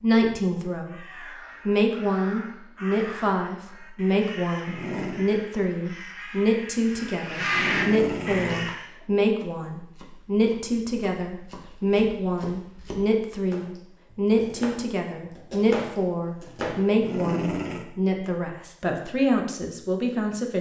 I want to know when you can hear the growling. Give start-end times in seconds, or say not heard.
4.2-5.2, 7.0-8.8, 16.4-17.9.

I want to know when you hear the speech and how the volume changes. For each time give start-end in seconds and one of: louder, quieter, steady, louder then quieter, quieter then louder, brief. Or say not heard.
0.0-1.1 brief
1.6-20.5 steady.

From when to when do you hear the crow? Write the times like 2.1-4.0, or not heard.
0.8-8.8.